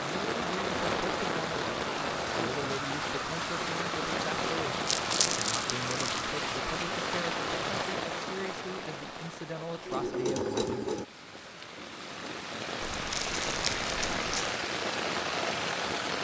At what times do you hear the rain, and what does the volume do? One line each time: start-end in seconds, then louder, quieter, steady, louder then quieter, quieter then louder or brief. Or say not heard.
0.0-16.1 quieter then louder.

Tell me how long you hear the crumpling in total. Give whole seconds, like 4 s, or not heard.
3 s.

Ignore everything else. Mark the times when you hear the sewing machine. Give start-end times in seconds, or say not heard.
9.8-12.4.